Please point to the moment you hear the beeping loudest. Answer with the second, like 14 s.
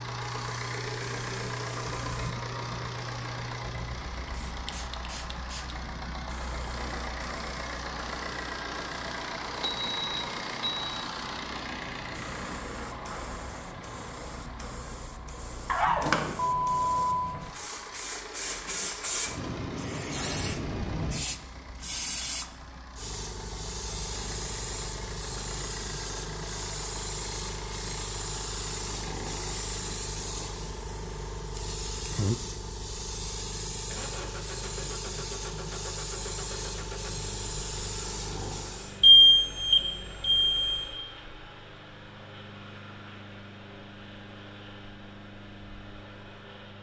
39 s.